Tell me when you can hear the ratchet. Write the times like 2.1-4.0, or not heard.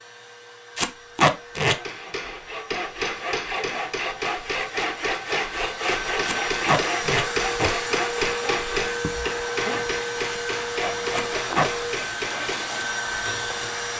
not heard.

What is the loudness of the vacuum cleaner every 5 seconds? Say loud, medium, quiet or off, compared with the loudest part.
quiet, loud, loud.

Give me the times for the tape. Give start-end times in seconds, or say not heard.
0.8-1.8, 6.2-7.7, 11.1-11.7.